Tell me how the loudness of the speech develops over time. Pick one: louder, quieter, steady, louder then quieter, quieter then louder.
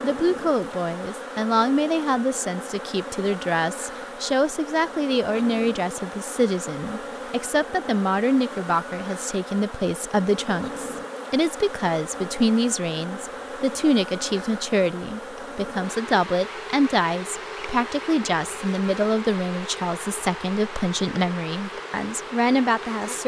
steady.